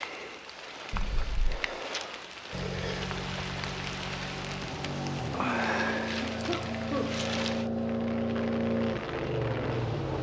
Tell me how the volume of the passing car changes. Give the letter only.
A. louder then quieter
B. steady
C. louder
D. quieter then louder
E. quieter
C.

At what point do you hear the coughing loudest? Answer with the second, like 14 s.
7 s.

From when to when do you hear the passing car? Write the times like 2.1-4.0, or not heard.
2.5-10.1.